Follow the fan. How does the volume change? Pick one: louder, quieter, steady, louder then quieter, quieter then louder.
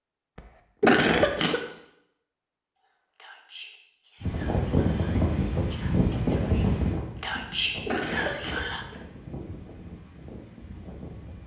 quieter.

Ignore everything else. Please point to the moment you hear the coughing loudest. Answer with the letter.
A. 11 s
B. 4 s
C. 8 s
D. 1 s
D.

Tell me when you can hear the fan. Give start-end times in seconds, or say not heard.
4.2-11.4.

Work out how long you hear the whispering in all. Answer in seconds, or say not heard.
6 s.